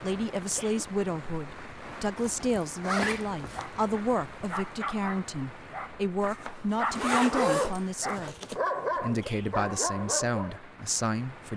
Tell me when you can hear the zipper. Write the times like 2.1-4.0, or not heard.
2.1-3.6, 6.2-8.6.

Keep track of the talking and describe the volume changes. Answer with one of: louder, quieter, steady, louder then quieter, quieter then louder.
steady.